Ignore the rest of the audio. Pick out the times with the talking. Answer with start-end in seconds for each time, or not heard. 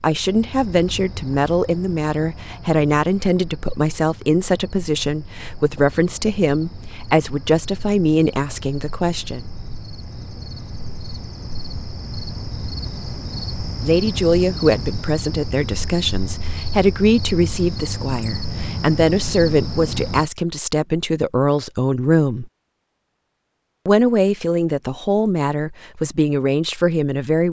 0.0-9.5, 13.8-22.5, 23.9-27.4.